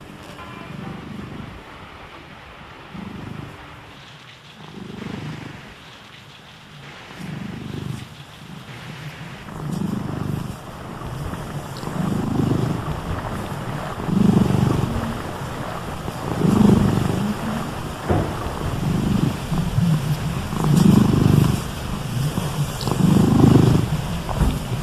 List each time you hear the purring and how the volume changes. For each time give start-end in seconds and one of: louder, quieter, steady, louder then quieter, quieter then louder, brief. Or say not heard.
0.0-24.7 louder.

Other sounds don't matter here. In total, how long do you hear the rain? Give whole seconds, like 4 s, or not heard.
25 s.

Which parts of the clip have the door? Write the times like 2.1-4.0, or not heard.
18.0-18.4.